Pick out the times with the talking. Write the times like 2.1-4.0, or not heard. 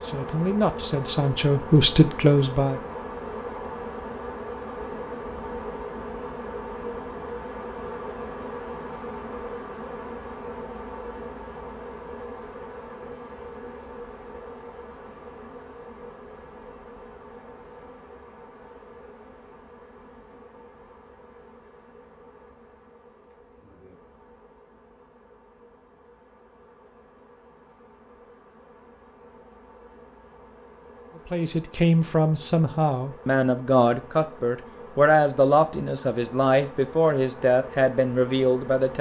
0.0-2.8, 31.3-38.9.